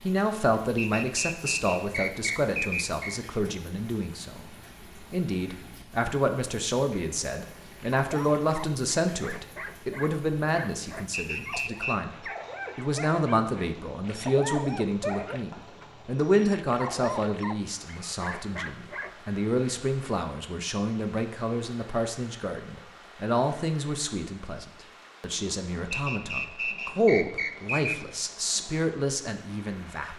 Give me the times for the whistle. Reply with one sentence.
The whistle can be heard from 0.8 to 3.2 s, from 11.1 to 11.9 s and from 25.9 to 27.9 s.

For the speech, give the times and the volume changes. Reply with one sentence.
You can hear the speech from 0.0 to 30.1 s, at a steady volume.